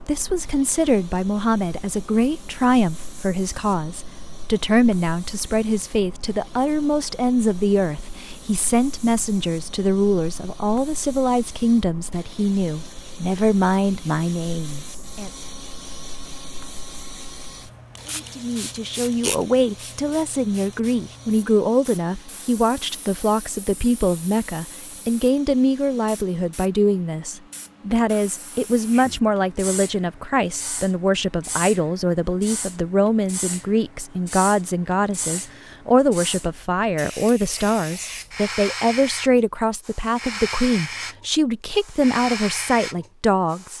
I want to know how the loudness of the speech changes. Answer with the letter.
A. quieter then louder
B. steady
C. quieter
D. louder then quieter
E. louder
B.